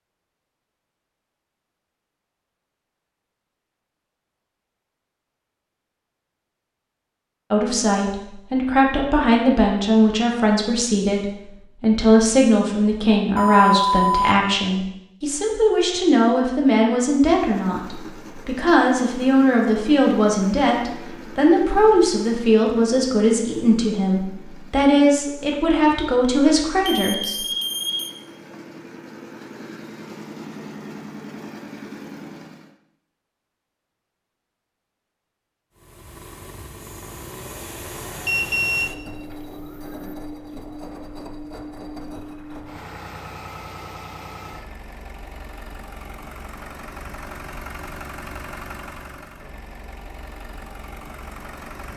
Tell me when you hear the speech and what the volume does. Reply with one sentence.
The speech can be heard from 7.5 to 27.4 s, at a steady volume.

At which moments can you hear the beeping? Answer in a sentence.
The beeping can be heard from 13.3 to 14.3 s, from 26.9 to 28.1 s and from 38.2 to 40.1 s.